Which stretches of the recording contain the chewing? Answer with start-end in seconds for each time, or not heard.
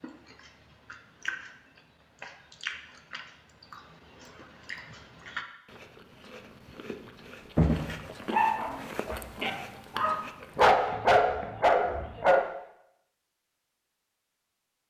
0.0-10.9.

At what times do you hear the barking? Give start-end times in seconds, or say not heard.
7.5-12.4.